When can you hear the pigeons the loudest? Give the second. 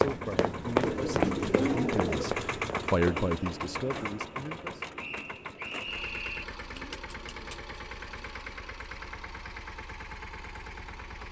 2 s.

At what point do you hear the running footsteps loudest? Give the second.
1 s.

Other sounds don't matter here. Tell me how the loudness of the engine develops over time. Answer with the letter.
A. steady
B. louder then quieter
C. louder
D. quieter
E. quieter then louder
D.